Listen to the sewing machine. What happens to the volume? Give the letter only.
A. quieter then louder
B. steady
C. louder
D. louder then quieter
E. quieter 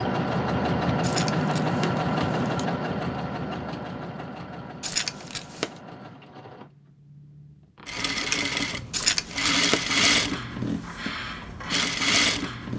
A.